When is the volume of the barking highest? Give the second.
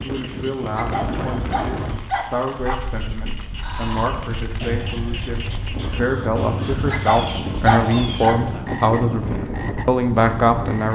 8 s.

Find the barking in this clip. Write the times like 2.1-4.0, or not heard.
0.8-2.8, 6.9-8.4.